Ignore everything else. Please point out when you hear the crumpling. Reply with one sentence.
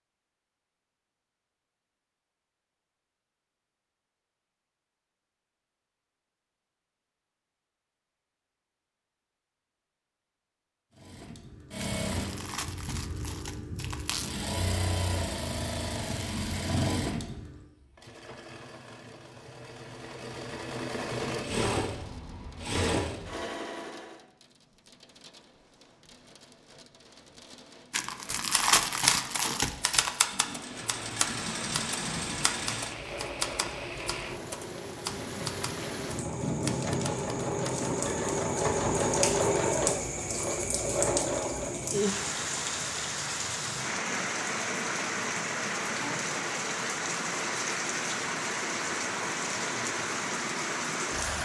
The crumpling can be heard from 11.8 to 14.3 s and from 27.9 to 30.2 s.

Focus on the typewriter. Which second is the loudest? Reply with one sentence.
The loudest moment of the typewriter is at 29 seconds.